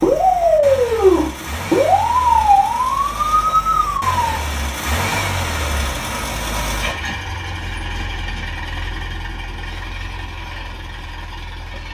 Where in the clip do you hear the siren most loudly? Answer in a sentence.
The volume of the siren peaks at 1 second.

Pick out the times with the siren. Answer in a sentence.
You can hear the siren from 0.0 to 4.4 s.